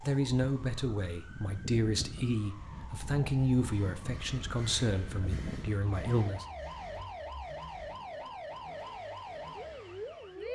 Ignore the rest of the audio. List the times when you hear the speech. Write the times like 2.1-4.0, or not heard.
0.0-6.5.